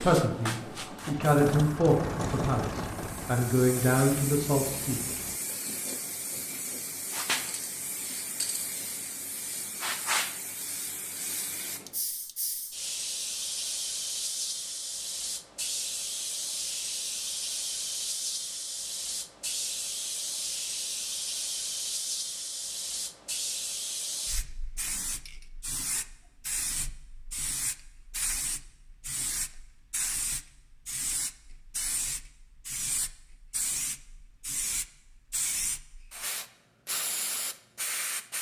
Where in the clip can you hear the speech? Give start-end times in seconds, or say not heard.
0.0-5.0.